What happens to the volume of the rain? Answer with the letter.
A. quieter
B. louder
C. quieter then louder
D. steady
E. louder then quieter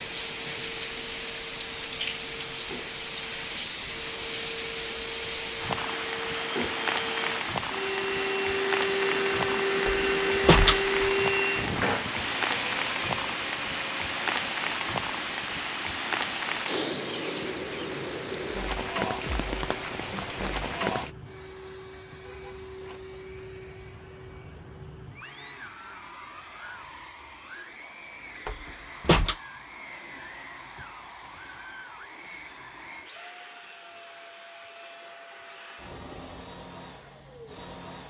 D.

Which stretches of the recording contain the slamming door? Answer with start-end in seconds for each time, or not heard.
9.8-11.1, 28.4-29.4.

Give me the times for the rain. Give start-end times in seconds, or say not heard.
0.0-21.1.